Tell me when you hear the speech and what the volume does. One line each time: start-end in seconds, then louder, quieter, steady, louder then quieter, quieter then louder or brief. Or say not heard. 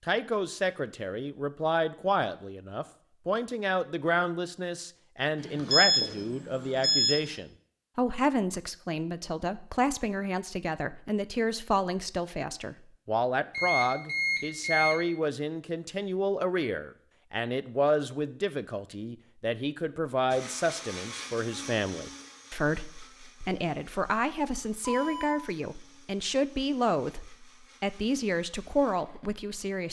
0.1-29.8 steady.